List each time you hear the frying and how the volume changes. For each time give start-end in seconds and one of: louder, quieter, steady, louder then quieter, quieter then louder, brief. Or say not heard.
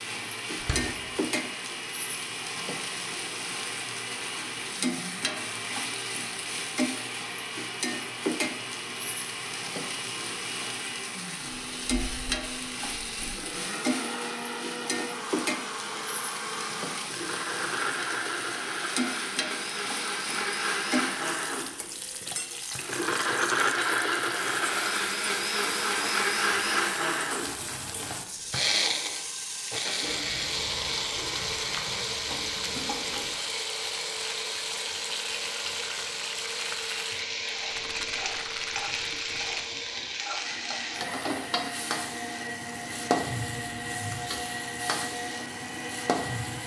0.0-46.6 steady.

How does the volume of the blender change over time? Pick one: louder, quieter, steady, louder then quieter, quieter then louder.
louder then quieter.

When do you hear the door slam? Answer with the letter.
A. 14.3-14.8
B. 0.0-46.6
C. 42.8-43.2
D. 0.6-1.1
D.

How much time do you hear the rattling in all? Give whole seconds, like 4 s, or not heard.
2 s.